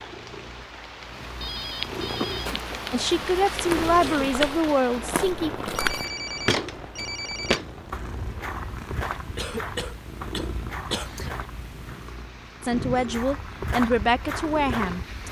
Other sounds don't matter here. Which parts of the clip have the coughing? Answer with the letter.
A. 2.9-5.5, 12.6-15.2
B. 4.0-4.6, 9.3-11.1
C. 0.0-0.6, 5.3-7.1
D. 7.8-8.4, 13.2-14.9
B.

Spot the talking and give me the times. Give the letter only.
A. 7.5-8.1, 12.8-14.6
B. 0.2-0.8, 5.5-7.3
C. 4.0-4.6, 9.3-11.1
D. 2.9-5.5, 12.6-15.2
D.